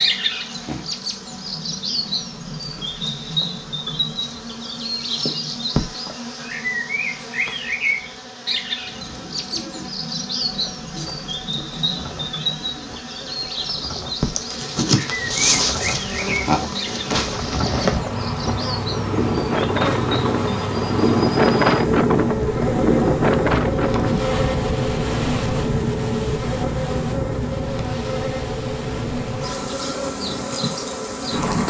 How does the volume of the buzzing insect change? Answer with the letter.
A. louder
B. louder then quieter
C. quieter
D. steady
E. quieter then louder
A.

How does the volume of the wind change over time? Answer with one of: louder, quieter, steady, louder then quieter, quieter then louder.
louder then quieter.